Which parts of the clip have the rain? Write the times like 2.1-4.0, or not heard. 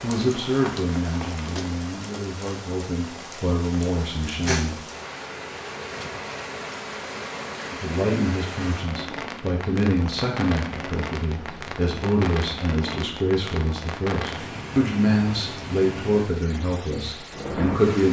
0.0-18.0.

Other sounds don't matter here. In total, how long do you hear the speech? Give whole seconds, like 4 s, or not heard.
15 s.